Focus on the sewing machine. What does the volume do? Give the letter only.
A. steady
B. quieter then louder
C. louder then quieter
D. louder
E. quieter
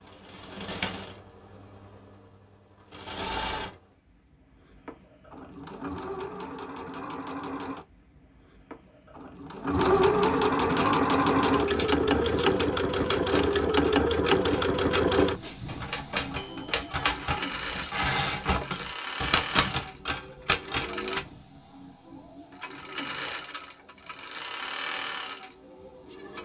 C.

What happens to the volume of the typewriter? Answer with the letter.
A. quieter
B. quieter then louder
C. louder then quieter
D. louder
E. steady
D.